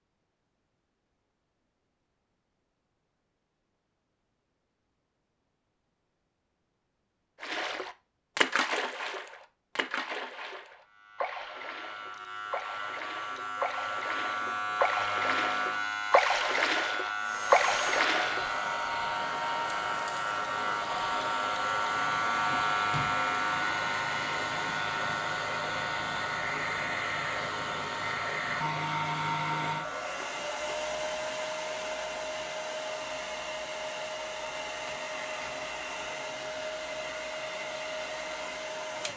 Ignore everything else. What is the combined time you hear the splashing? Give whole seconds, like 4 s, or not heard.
11 s.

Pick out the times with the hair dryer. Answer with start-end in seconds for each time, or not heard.
17.1-39.1.